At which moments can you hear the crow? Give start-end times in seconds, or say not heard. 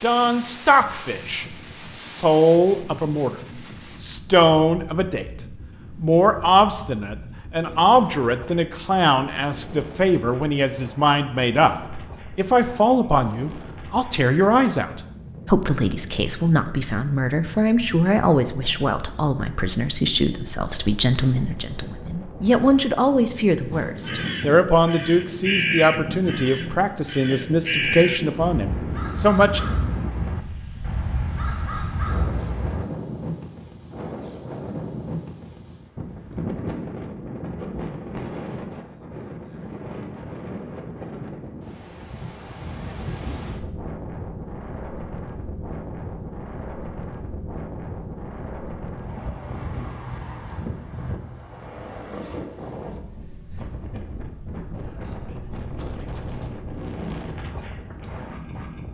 23.7-32.9.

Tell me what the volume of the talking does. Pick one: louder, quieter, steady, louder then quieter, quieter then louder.
steady.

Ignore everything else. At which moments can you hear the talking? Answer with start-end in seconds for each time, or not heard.
0.0-3.4, 4.0-29.6.